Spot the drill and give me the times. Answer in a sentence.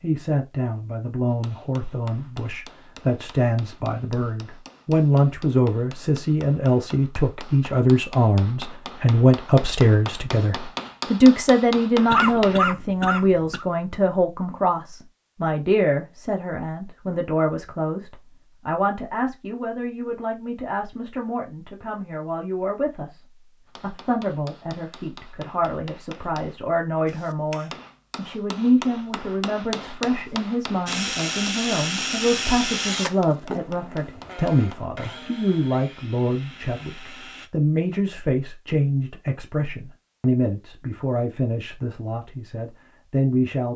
The drill can be heard from 30.9 to 37.5 s.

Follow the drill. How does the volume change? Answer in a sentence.
The loudness of the drill goes down.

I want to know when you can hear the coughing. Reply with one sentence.
You can hear the coughing from 12.1 to 13.7 s.